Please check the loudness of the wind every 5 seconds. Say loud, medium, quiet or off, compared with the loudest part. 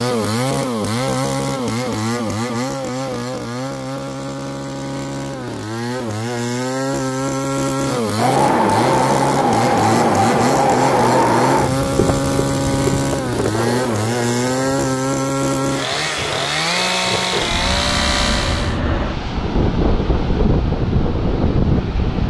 off, loud, loud, medium, loud.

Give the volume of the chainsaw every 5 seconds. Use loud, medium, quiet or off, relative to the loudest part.
loud, loud, loud, loud, off.